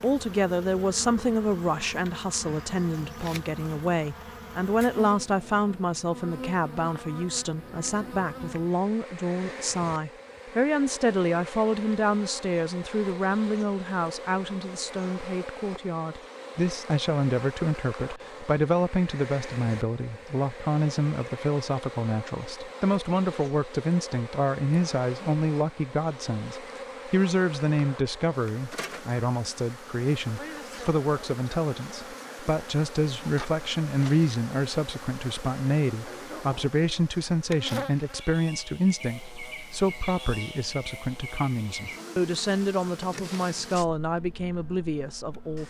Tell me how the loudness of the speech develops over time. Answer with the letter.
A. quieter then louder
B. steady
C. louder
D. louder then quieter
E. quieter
B.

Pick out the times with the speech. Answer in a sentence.
You can hear the speech from 0.0 to 45.6 s.